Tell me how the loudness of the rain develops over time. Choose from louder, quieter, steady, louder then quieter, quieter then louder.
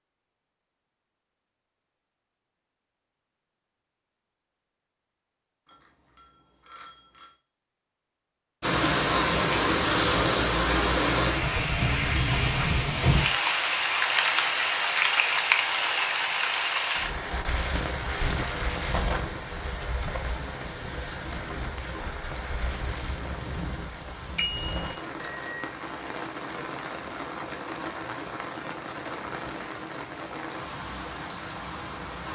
quieter.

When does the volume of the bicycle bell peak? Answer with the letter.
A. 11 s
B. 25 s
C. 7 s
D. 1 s
B.